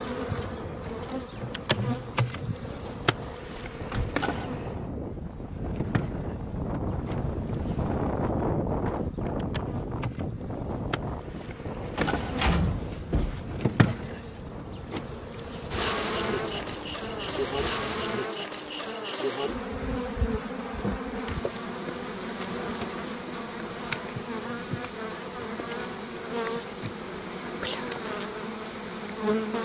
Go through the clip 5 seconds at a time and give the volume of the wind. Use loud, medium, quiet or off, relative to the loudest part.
medium, loud, medium, medium, off, off.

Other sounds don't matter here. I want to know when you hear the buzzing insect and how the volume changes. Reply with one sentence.
The buzzing insect can be heard from 0.0 to 29.5 s, getting quieter then louder.